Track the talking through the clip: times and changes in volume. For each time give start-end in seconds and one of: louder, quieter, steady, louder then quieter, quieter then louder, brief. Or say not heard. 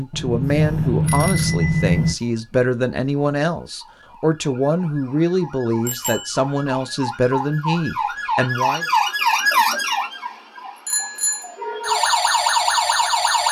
0.0-8.8 steady.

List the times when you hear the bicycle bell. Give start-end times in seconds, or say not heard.
0.1-2.1, 5.8-6.4, 10.8-11.9.